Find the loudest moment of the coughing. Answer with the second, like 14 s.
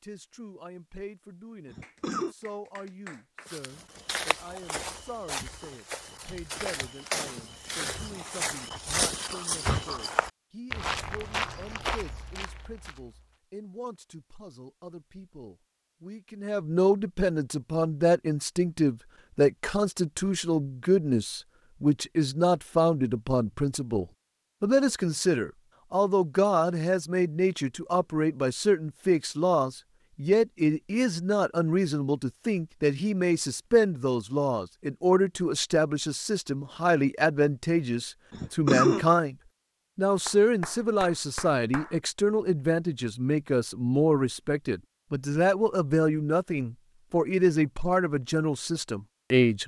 39 s.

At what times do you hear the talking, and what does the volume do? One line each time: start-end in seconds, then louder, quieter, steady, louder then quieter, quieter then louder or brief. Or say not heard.
0.0-39.4 louder
40.0-49.6 steady.